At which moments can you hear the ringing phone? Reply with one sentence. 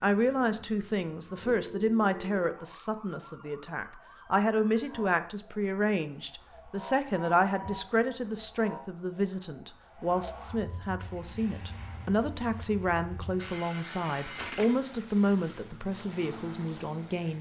The ringing phone can be heard from 1.5 to 2.5 s, from 7.2 to 8.2 s and from 13.3 to 14.8 s.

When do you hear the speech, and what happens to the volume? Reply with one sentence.
You can hear the speech from 0.0 to 17.3 s, at a steady volume.